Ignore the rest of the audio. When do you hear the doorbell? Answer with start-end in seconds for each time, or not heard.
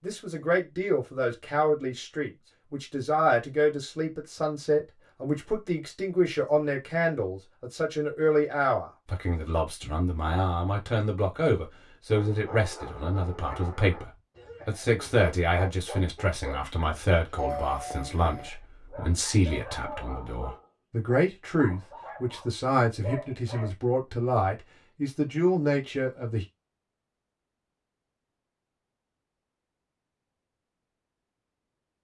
17.4-18.5.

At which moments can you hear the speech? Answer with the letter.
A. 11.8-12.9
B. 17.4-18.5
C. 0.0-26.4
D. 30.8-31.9
C.